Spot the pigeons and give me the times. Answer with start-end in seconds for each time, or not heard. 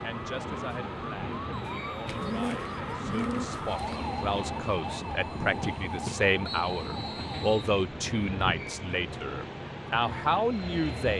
2.0-4.0.